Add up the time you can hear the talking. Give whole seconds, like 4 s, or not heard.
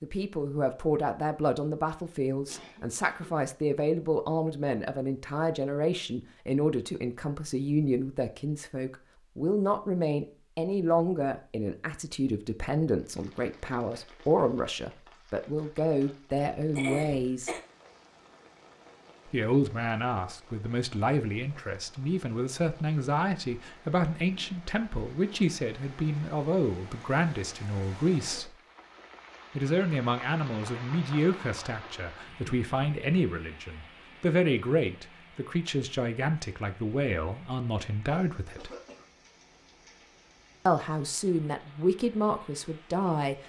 39 s.